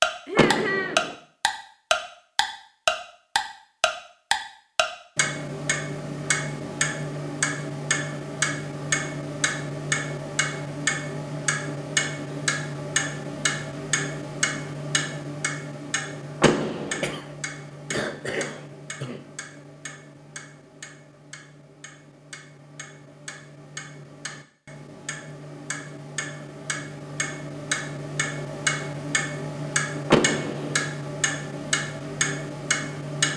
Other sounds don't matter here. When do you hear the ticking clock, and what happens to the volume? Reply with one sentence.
You can hear the ticking clock from 0.0 to 33.3 s, getting quieter then louder.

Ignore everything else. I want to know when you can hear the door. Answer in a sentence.
You can hear the door from 0.3 to 1.1 s, from 16.4 to 17.2 s and from 30.1 to 30.9 s.